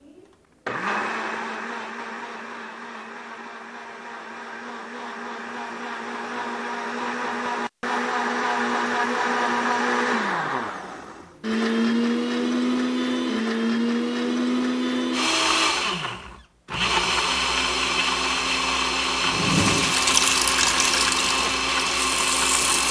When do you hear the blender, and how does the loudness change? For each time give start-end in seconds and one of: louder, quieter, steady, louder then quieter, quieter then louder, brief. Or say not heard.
0.1-22.8 louder.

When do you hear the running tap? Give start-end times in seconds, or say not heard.
19.2-22.8.